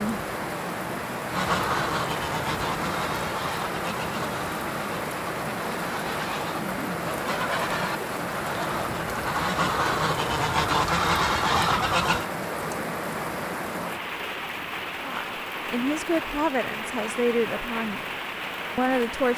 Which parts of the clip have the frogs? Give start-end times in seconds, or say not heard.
not heard.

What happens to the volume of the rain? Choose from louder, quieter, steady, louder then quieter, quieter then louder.
steady.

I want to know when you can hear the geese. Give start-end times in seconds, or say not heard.
1.3-12.2.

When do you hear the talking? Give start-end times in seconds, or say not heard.
15.0-18.1, 18.8-19.3.